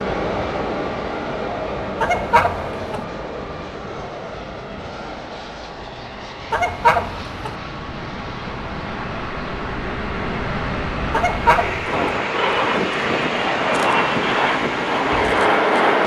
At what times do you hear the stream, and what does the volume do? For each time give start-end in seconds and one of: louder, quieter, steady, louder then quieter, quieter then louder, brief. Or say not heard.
0.0-16.0 quieter then louder.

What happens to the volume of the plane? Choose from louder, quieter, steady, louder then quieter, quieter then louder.
louder.